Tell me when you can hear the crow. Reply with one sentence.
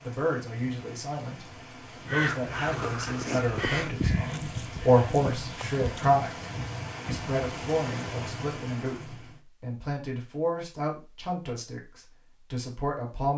The crow can be heard from 2.0 to 6.2 s.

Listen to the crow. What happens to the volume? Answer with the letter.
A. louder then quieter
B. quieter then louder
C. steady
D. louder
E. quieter
E.